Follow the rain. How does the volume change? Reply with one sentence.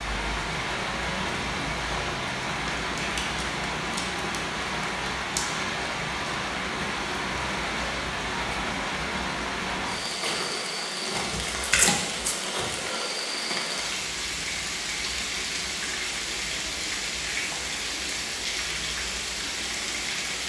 The loudness of the rain stays about the same.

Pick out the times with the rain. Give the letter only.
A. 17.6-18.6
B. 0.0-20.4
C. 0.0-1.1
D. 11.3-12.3
B.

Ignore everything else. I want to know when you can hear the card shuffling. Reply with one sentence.
The card shuffling can be heard from 11.3 to 12.3 s.